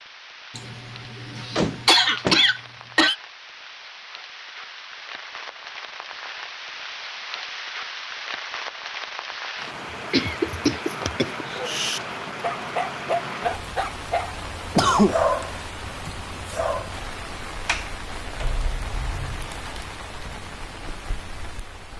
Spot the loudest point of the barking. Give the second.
15 s.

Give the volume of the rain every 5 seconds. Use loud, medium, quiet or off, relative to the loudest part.
medium, loud, loud, loud, medium.